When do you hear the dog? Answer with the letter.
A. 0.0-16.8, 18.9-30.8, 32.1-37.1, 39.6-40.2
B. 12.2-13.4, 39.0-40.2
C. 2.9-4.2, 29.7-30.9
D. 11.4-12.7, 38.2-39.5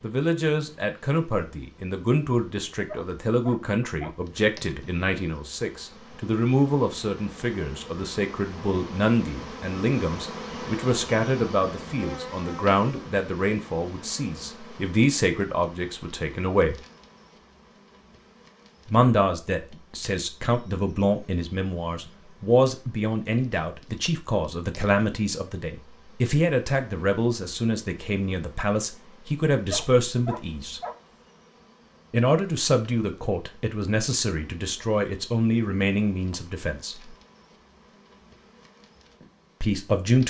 C.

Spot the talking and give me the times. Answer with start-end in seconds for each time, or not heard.
0.0-16.8, 18.9-30.8, 32.1-37.1, 39.6-40.2.